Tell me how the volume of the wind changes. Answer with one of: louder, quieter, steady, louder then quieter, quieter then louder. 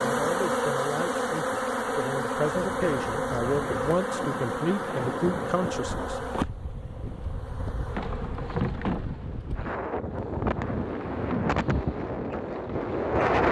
louder.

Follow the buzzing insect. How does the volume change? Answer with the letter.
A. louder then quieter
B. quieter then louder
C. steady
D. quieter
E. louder
D.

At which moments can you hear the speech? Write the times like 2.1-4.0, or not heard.
0.0-6.3.